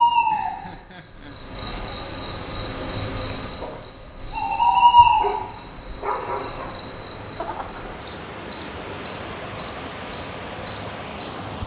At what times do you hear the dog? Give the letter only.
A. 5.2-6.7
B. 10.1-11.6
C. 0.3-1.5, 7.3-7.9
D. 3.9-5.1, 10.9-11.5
A.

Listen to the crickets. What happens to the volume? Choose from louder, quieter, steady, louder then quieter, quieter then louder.
louder then quieter.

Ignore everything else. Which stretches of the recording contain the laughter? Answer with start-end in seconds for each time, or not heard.
0.3-1.5, 7.3-7.9.